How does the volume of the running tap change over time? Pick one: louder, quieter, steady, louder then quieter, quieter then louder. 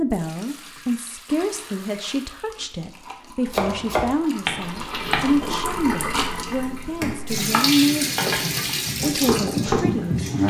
louder.